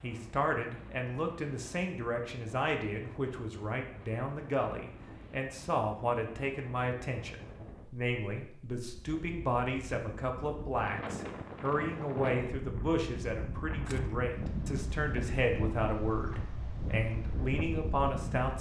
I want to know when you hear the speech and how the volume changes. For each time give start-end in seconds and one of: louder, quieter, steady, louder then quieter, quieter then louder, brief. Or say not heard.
0.0-18.5 steady.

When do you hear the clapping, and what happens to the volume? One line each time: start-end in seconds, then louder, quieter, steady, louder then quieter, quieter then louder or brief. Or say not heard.
not heard.